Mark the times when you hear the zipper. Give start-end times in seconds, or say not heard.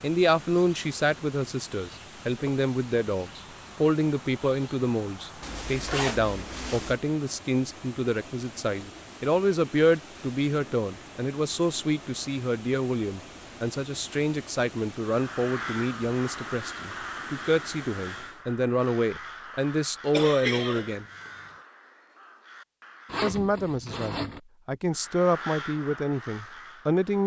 5.4-7.0, 23.1-24.4.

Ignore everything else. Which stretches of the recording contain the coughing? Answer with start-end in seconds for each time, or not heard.
20.1-21.3.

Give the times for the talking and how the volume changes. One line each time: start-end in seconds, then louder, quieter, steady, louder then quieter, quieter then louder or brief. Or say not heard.
0.0-21.1 steady
23.2-27.2 louder then quieter.